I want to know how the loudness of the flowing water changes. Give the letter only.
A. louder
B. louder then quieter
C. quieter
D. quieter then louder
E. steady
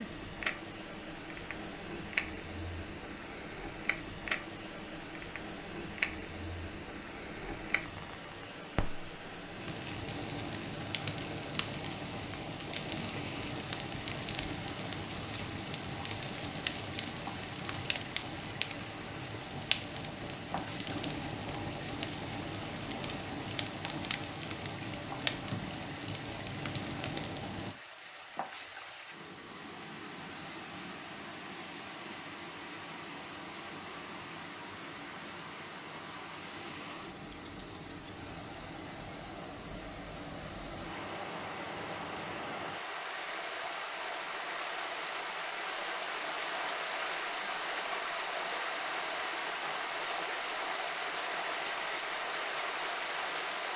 A.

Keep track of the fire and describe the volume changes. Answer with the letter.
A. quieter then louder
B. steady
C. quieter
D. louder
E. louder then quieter
B.